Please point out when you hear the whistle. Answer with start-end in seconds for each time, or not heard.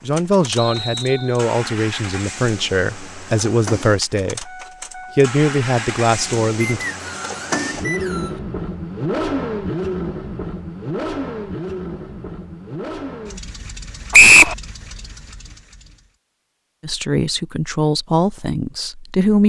0.6-1.4, 6.7-8.3, 14.1-14.6.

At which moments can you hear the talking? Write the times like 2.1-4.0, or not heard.
0.0-6.8, 16.8-19.4.